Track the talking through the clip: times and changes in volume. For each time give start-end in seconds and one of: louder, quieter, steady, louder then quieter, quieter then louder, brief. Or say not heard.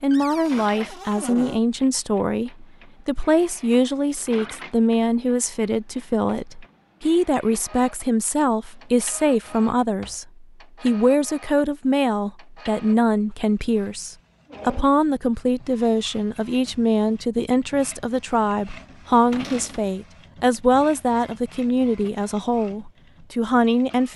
0.0-24.1 steady.